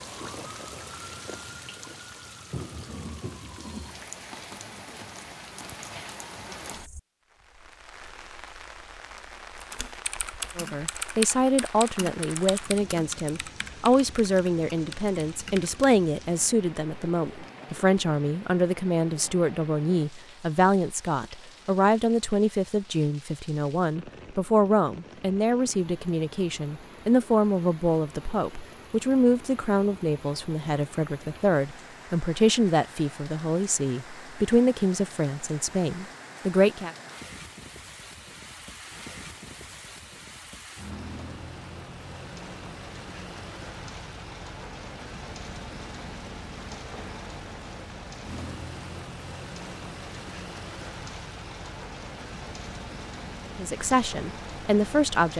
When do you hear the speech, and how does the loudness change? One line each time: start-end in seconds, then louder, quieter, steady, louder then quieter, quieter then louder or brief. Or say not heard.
10.6-37.0 steady
53.5-55.3 brief.